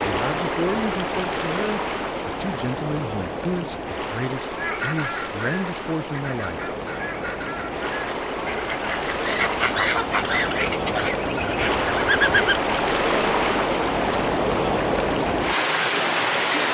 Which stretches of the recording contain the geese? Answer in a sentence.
You can hear the geese from 4.5 to 12.6 s.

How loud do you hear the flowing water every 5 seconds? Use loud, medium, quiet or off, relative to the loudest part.
medium, medium, loud, loud.